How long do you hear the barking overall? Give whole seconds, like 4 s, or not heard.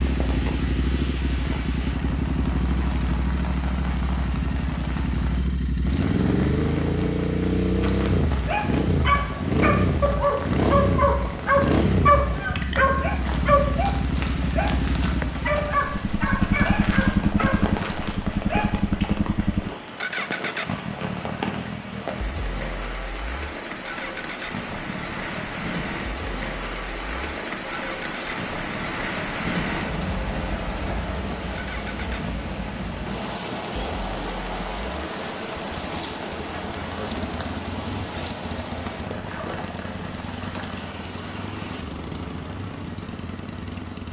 11 s.